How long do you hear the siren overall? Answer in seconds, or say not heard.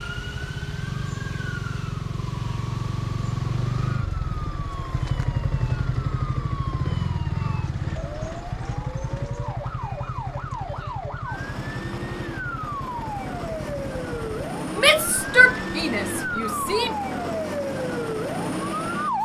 19 s.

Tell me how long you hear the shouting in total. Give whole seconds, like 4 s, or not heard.
2 s.